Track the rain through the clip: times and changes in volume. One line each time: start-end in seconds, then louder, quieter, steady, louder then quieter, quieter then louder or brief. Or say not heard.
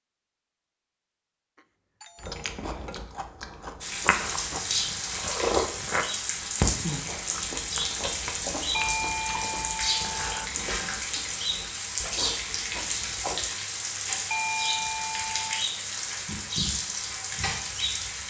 3.8-18.2 steady.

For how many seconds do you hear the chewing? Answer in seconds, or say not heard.
11 s.